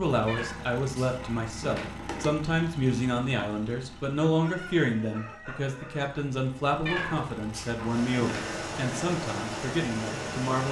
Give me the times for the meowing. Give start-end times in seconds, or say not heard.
0.2-2.3, 6.8-8.4.